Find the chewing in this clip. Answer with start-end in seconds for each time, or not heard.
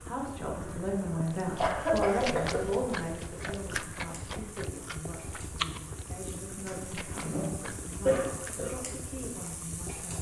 1.2-8.7.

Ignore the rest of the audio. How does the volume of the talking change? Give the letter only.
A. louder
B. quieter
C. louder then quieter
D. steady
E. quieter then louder
B.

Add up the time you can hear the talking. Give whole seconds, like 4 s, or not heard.
10 s.